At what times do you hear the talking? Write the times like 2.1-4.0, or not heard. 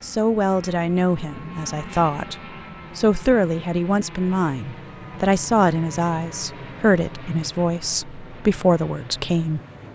0.0-2.4, 3.0-9.6.